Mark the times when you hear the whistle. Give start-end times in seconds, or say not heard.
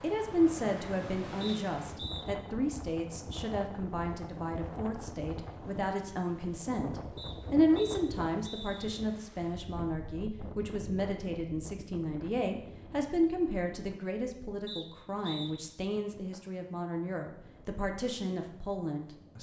1.4-2.2, 7.2-8.9, 14.7-15.5.